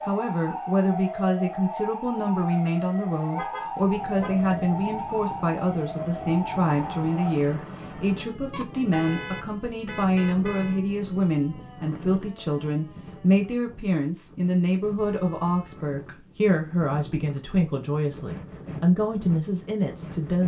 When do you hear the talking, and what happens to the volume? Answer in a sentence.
The talking can be heard from 0.1 to 20.4 s, at a steady volume.